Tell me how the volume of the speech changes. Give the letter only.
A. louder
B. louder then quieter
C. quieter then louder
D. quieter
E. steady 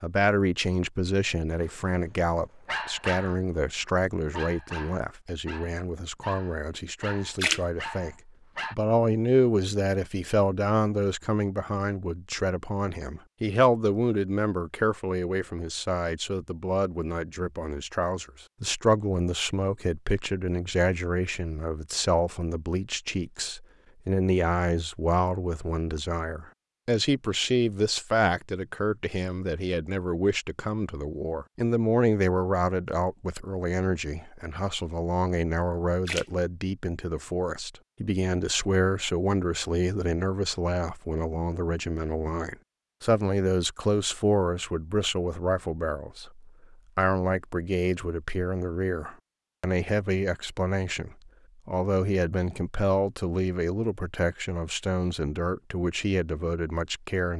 E.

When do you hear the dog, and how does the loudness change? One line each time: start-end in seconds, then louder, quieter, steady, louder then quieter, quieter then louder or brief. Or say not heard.
1.6-8.8 quieter.